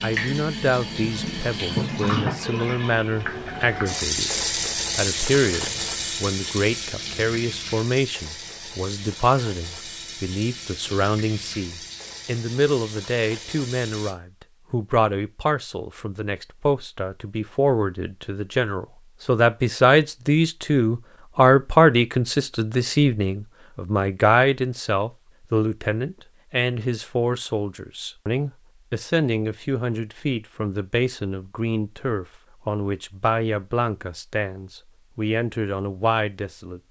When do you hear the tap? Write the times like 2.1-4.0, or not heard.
0.0-14.2.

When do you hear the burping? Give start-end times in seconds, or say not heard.
not heard.